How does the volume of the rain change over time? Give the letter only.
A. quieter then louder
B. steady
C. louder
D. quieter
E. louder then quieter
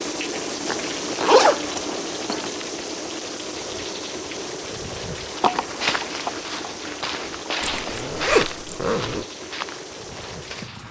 D.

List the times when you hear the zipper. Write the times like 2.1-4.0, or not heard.
0.7-2.5, 7.6-9.2.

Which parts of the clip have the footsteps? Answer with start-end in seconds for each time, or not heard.
5.3-10.8.